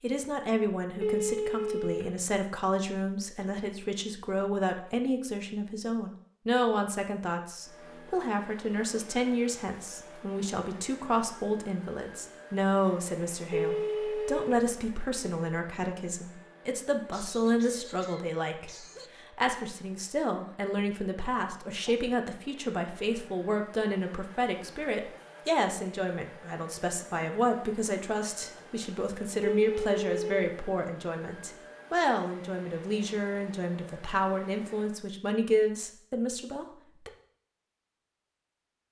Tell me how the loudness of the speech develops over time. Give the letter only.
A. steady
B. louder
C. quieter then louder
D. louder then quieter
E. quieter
A.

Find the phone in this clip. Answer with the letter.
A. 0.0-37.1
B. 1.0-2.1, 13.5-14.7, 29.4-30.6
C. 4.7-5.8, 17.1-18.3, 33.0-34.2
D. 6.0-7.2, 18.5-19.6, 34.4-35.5
B.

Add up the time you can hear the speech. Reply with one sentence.
You can hear the speech for 37 seconds altogether.